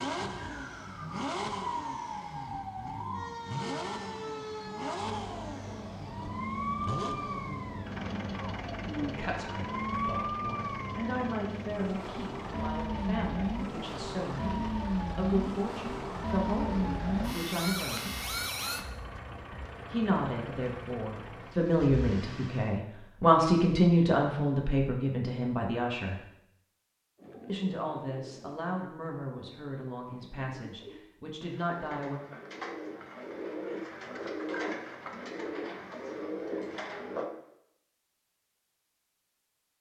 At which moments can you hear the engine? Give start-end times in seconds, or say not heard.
0.0-22.8.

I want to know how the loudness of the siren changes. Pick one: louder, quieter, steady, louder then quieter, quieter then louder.
louder.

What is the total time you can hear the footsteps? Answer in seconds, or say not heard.
not heard.